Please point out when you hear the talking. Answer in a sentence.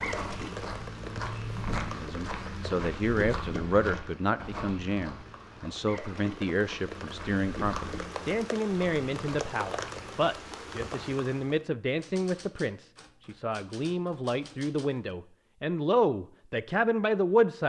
The talking can be heard from 1.9 to 17.6 s.